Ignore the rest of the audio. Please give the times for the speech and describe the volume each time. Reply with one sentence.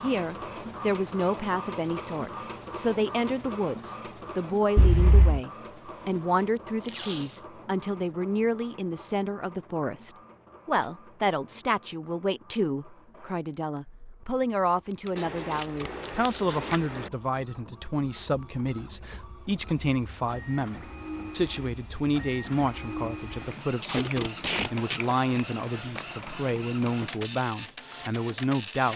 You can hear the speech from 0.0 to 28.9 s, at a steady volume.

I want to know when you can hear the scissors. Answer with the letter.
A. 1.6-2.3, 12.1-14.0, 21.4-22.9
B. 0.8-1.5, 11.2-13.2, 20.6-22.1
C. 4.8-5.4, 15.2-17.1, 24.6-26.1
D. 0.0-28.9
C.